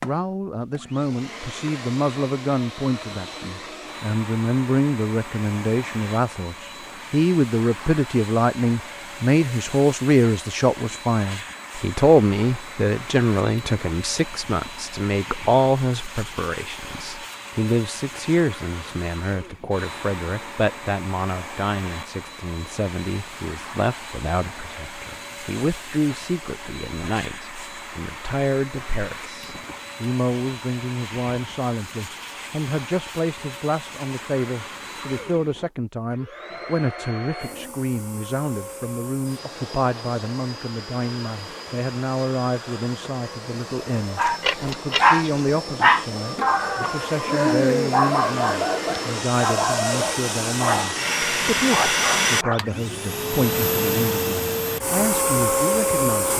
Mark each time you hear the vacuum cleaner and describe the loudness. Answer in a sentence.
You can hear the vacuum cleaner from 0.0 to 56.3 s, getting louder.